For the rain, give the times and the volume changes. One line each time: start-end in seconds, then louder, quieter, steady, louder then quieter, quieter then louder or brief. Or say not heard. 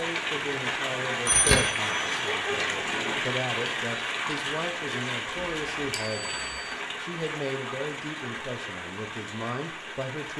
0.0-10.3 quieter.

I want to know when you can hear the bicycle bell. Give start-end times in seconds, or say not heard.
1.2-2.5, 5.9-6.7.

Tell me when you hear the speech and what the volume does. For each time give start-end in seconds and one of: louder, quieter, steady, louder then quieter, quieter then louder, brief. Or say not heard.
0.0-10.3 steady.